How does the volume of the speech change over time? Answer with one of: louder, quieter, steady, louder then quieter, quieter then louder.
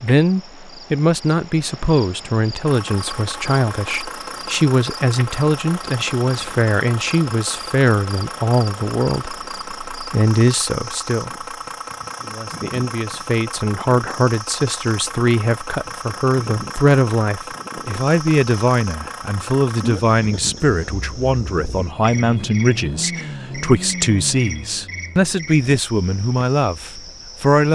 steady.